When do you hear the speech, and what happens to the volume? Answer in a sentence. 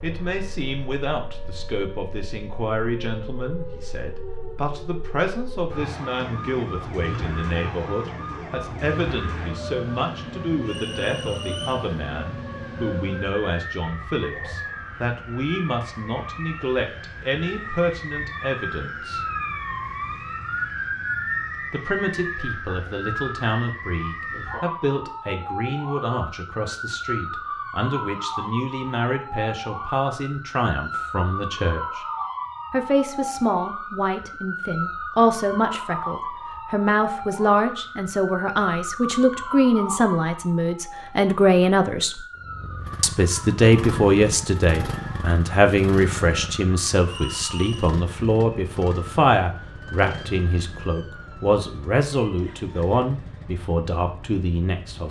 The speech can be heard from 0.0 to 19.2 s, at a steady volume; from 21.7 to 32.0 s, at a steady volume; from 32.7 to 42.2 s, getting louder; and from 43.0 to 55.0 s, getting quieter.